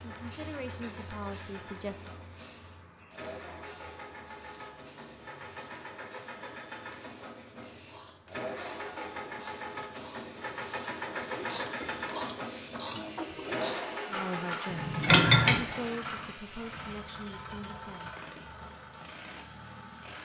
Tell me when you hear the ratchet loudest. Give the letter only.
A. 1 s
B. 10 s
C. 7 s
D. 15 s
D.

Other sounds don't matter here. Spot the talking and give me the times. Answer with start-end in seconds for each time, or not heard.
0.0-2.1, 14.1-18.1.